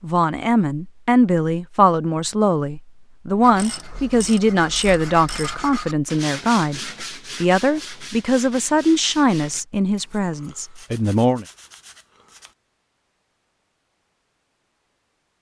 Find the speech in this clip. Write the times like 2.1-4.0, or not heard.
0.0-11.4.